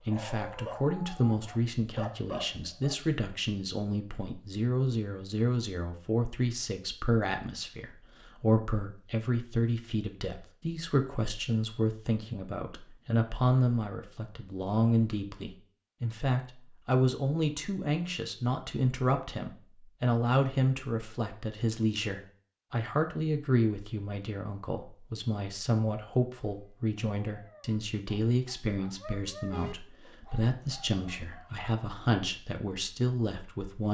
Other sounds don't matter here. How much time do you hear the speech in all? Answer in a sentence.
The speech can be heard for 34 seconds in total.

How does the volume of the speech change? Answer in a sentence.
The loudness of the speech stays about the same.